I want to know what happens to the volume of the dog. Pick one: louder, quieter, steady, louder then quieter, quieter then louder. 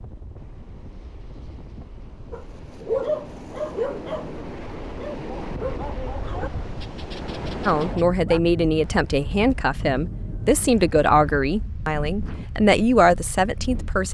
quieter.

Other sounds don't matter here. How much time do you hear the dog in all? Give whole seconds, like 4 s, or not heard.
6 s.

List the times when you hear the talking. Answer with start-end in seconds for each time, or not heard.
7.7-14.0.